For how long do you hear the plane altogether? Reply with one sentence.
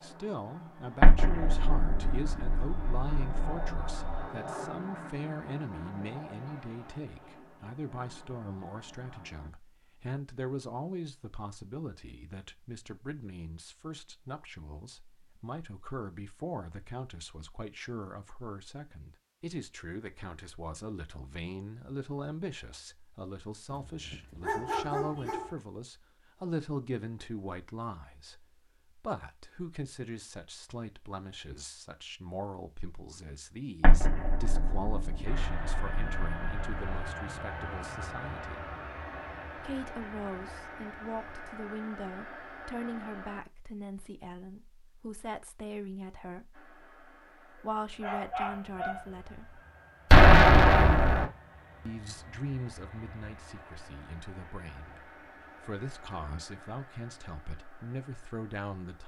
The plane can be heard for 30 seconds in total.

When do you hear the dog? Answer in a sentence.
The dog can be heard from 23.7 to 25.6 s and from 48.0 to 49.1 s.